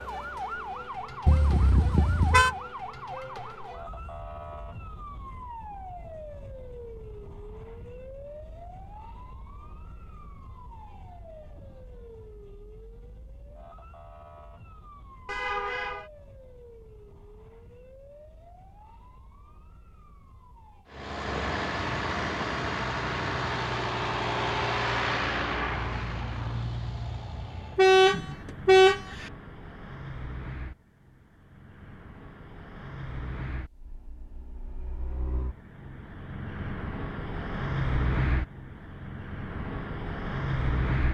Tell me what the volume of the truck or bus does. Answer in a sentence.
The volume of the truck or bus goes down, then up.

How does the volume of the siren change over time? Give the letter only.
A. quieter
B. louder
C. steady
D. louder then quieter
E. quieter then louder
A.